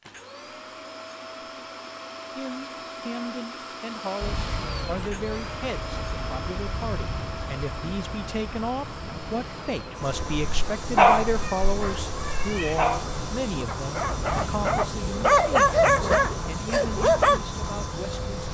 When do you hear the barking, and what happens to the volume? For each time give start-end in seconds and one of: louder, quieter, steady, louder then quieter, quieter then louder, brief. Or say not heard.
10.1-17.4 quieter then louder.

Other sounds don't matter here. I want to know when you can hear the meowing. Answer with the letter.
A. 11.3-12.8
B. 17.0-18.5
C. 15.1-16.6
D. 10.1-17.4
A.